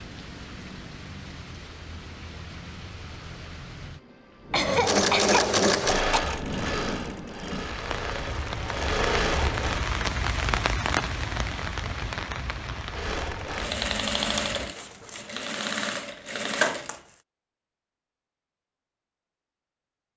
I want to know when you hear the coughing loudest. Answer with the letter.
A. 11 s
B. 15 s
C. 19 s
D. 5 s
D.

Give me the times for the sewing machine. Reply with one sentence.
You can hear the sewing machine from 4.7 to 9.8 s and from 12.9 to 17.1 s.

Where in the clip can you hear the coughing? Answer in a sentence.
The coughing can be heard from 4.5 to 6.2 s.